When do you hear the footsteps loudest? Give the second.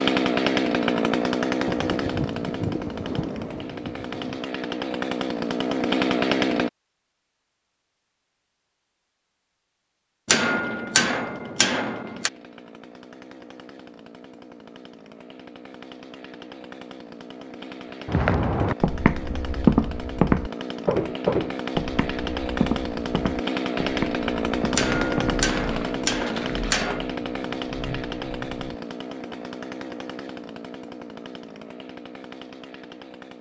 20 s.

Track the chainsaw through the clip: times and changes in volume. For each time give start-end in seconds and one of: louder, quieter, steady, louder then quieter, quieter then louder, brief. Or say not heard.
0.0-6.7 quieter then louder
10.7-33.3 louder then quieter.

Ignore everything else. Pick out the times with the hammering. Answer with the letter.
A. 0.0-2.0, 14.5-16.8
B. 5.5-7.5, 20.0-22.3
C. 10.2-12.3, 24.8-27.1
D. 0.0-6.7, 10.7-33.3
C.